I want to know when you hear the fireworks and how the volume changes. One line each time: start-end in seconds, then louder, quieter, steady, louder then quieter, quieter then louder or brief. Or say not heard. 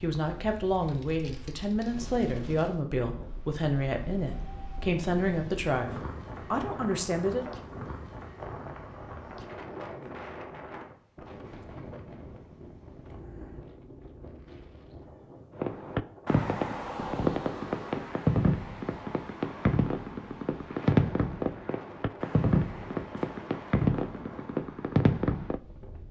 15.6-25.6 steady.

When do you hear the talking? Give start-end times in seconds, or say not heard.
0.0-7.5.